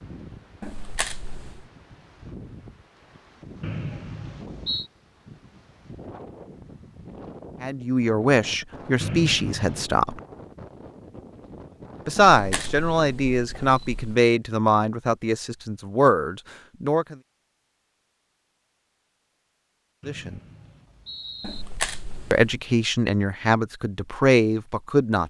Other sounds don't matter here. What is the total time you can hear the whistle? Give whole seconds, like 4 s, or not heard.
4 s.